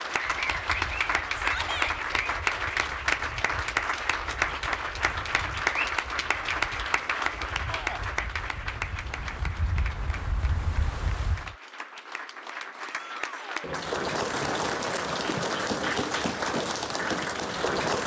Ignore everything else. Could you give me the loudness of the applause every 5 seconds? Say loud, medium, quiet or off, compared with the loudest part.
loud, loud, medium, loud.